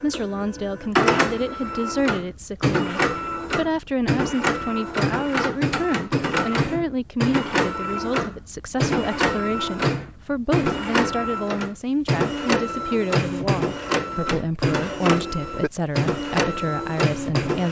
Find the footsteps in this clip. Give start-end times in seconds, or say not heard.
not heard.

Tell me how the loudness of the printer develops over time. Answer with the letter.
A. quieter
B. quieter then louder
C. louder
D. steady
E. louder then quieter
D.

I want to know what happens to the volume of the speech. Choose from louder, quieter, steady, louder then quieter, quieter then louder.
steady.